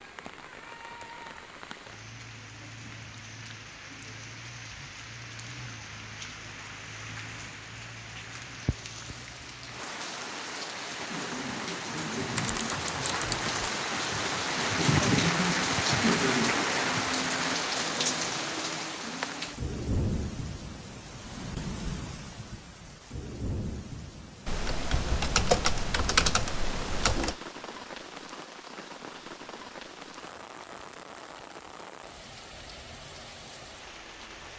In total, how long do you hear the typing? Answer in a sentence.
The typing can be heard for 4 seconds in total.